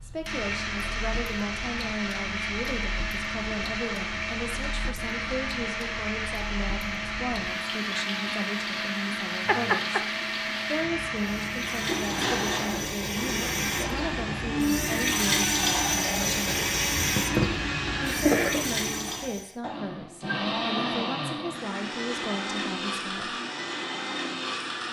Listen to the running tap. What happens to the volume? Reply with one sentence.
The volume of the running tap goes up.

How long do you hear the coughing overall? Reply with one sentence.
The coughing can be heard for 2 seconds in total.